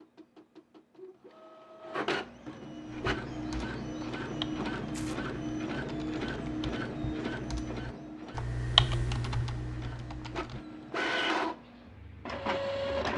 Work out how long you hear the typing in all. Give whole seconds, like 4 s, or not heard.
8 s.